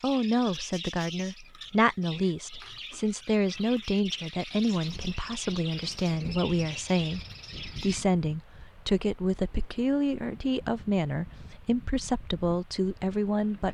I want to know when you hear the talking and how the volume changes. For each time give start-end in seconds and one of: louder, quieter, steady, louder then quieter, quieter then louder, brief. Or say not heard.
0.0-13.6 steady.